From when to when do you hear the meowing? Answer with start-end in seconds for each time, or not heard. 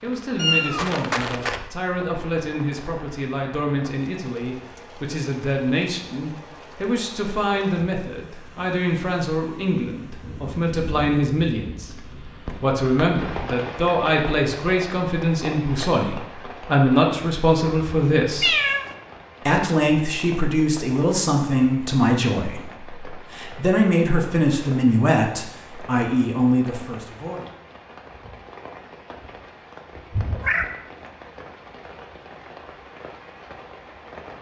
0.3-1.6, 18.4-18.9, 30.1-30.6.